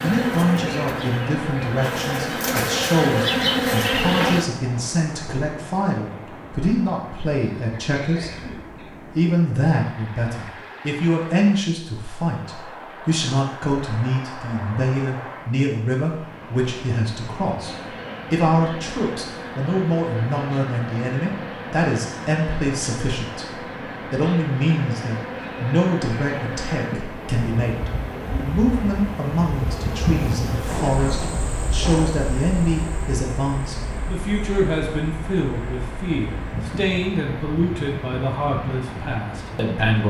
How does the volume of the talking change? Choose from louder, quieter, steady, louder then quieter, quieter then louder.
steady.